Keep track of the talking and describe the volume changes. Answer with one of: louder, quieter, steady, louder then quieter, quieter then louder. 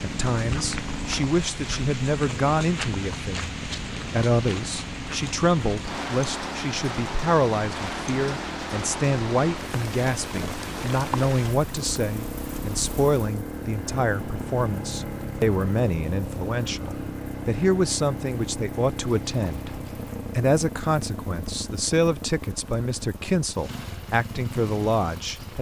steady.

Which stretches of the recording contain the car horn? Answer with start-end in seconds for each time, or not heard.
not heard.